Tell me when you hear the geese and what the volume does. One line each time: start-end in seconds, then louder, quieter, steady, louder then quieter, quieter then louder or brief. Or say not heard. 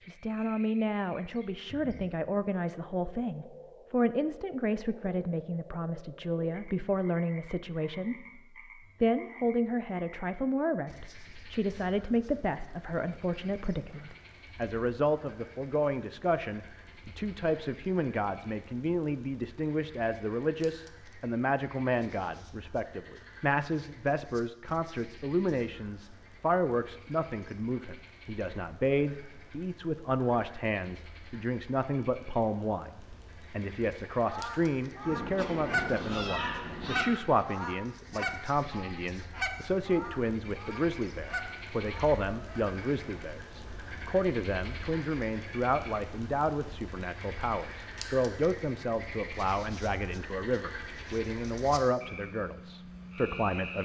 34.2-42.6 quieter.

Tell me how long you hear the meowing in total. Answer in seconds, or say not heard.
2 s.